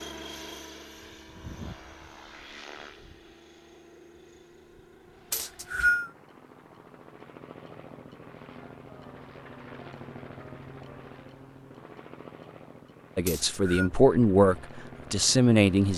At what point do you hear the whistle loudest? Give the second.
6 s.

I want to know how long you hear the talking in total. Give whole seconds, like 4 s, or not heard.
3 s.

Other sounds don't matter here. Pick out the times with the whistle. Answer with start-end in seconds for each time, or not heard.
5.3-6.1, 13.2-13.9.